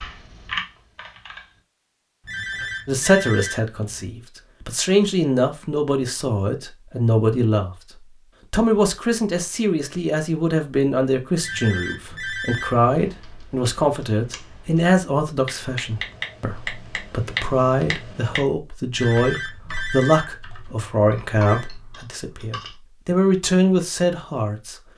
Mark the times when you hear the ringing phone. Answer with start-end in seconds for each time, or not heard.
2.2-4.0, 11.3-12.8, 18.9-21.7.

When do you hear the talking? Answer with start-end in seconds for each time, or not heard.
2.9-7.7, 8.5-24.8.